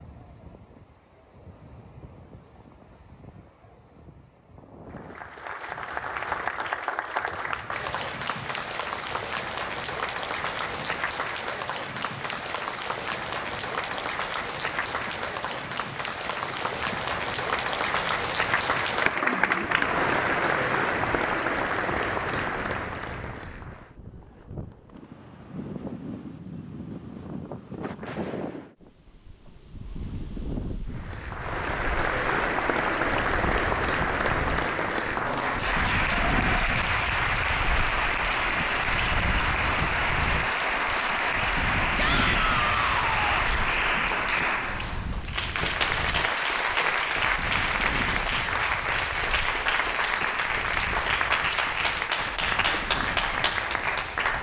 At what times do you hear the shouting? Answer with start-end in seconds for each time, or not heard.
42.0-43.5.